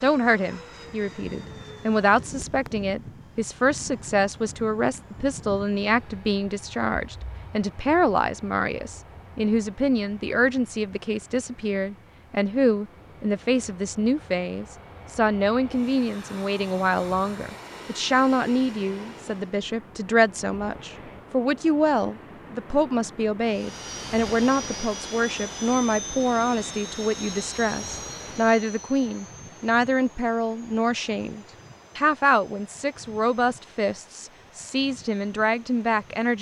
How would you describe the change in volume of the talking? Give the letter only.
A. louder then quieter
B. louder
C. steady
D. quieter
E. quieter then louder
C.